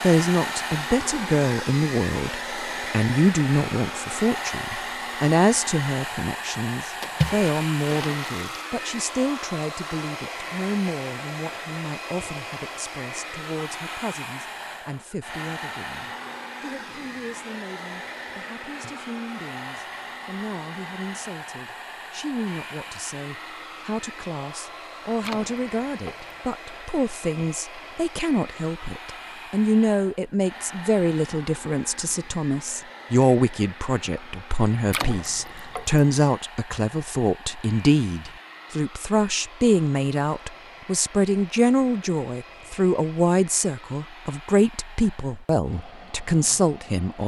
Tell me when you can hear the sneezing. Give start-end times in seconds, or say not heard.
not heard.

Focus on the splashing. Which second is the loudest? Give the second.
7 s.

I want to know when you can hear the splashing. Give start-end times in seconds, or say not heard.
7.0-8.5, 25.2-26.4, 34.9-36.0.